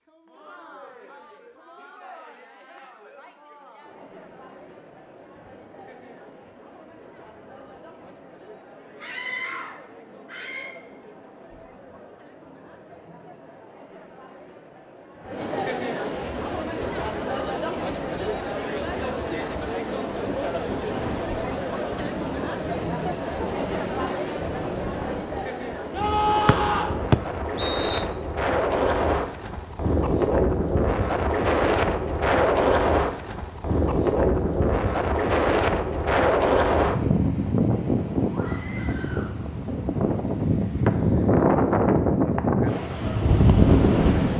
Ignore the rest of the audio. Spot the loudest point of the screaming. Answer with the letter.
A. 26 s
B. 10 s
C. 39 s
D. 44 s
A.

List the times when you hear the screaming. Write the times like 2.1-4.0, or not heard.
9.0-10.7, 25.9-27.0, 38.3-39.3.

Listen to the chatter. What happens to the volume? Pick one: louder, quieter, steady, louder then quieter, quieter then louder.
louder.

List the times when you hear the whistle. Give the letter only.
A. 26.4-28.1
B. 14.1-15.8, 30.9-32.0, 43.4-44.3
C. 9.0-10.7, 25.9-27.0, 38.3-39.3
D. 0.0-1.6
A.